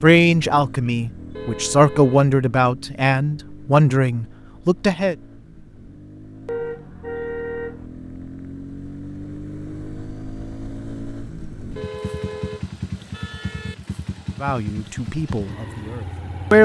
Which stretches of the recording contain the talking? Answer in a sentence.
The talking can be heard from 0.0 to 5.2 s and from 14.4 to 16.6 s.